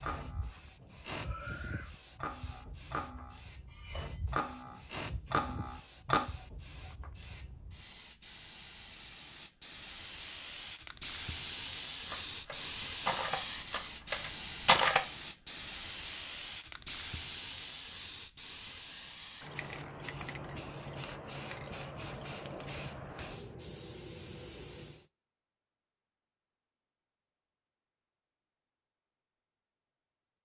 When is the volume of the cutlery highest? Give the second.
15 s.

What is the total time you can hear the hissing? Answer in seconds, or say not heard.
25 s.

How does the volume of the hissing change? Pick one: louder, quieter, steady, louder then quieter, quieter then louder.
louder then quieter.